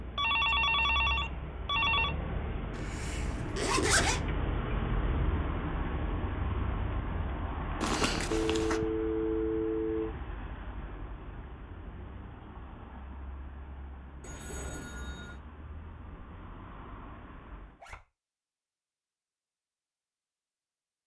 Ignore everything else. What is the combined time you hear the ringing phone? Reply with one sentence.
The ringing phone can be heard for 5 seconds in total.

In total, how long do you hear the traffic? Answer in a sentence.
The traffic can be heard for 18 seconds in total.